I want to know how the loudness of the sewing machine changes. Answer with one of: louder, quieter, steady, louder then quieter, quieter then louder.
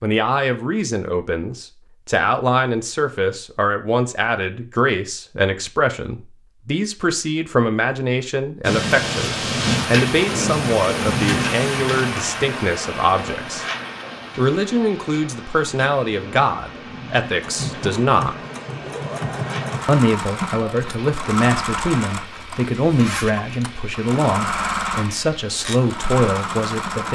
steady.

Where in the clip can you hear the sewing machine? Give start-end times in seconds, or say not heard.
17.4-27.1.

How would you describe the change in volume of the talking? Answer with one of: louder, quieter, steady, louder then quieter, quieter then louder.
steady.